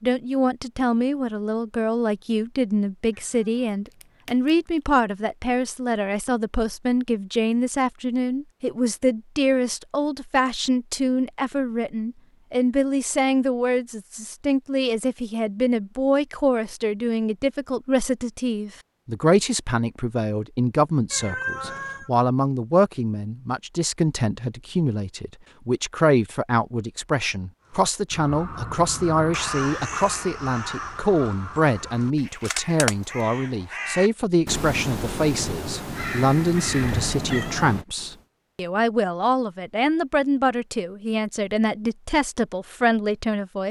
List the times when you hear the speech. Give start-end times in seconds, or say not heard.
0.0-43.6.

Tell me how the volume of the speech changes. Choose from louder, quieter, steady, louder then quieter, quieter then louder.
steady.